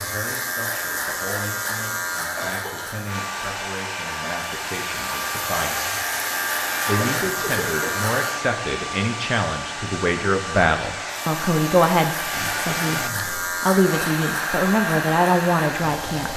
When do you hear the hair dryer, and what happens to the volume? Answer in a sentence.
The hair dryer can be heard from 3.0 to 16.3 s, at a steady volume.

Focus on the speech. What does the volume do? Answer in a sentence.
The loudness of the speech goes up.